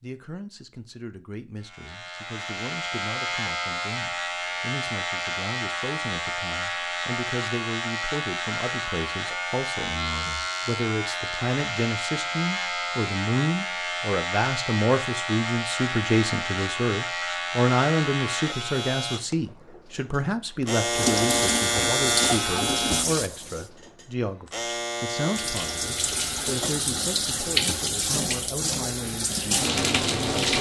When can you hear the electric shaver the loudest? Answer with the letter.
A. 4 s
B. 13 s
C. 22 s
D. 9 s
C.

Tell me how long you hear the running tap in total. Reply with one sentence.
The running tap can be heard for 8 seconds in total.